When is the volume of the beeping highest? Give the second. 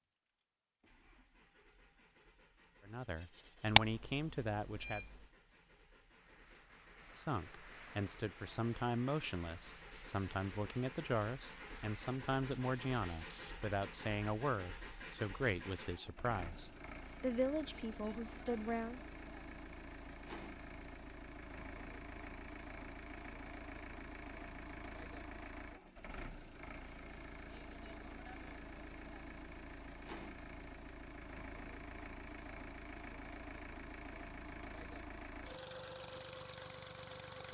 4 s.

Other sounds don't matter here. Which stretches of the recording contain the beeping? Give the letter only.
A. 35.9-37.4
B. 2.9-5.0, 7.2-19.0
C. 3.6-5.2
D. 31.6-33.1
C.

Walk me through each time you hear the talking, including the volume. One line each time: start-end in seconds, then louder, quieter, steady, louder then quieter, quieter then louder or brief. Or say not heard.
2.9-5.0 brief
7.2-19.0 steady.